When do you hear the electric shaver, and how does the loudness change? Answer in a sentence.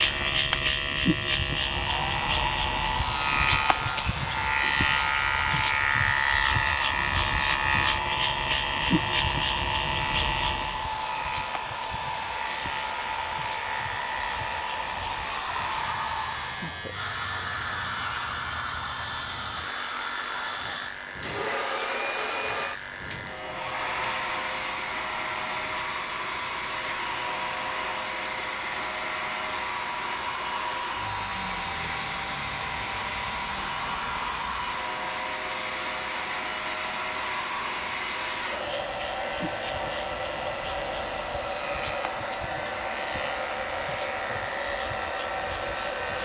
The electric shaver can be heard from 0.0 to 46.2 s, getting quieter.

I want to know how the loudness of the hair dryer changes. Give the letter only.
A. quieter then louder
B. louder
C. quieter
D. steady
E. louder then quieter
D.